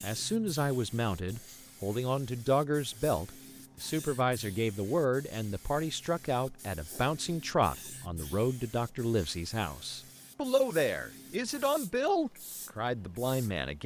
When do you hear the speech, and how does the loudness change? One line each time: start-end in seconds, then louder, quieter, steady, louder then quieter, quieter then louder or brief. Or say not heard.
0.0-13.8 steady.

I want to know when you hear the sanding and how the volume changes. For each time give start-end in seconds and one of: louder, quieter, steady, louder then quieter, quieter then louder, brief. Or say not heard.
not heard.